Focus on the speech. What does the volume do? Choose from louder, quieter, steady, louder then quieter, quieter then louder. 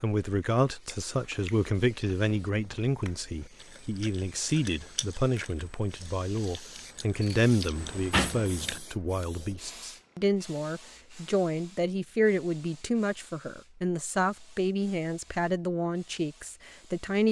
steady.